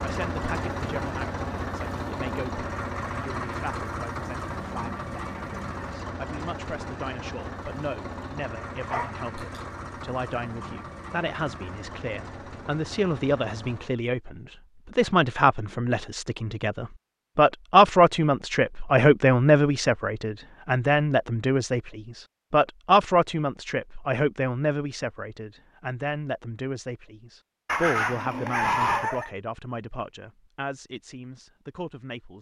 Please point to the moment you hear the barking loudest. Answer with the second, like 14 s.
29 s.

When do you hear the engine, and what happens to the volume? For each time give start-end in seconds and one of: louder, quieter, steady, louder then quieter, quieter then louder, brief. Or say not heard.
0.0-14.0 quieter.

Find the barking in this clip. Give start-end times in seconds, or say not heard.
8.9-9.6, 27.6-29.3.